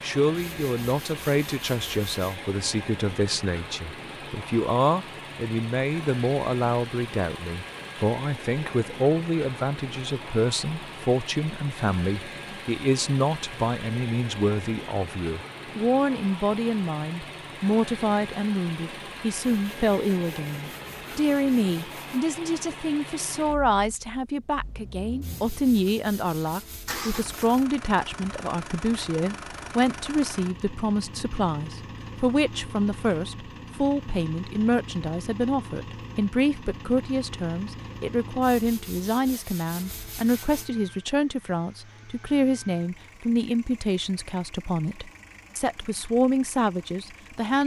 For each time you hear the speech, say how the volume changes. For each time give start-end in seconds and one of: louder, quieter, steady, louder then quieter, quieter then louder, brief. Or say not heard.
0.0-47.6 steady.